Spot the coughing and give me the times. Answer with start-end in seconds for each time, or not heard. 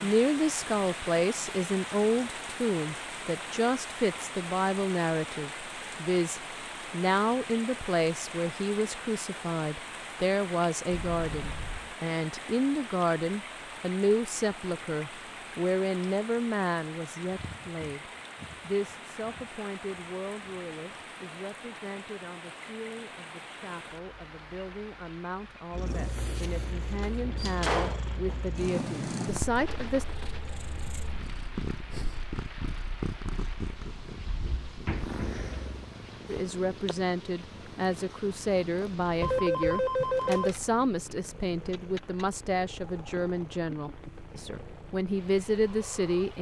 not heard.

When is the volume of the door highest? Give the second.
28 s.